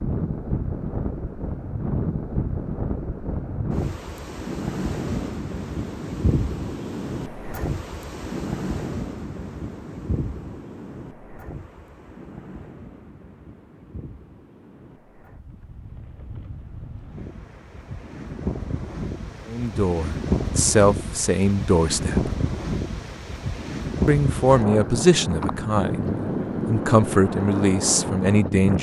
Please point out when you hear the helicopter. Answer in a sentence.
The helicopter can't be heard in this clip.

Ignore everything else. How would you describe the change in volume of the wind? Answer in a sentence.
The loudness of the wind goes down, then up.